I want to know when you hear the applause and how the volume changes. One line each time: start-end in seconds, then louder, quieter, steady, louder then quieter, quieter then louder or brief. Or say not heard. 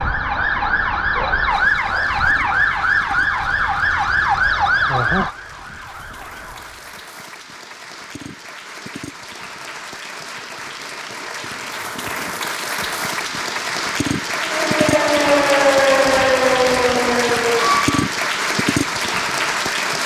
1.5-20.0 louder.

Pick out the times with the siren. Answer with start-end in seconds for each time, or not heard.
0.0-7.0, 14.4-18.1.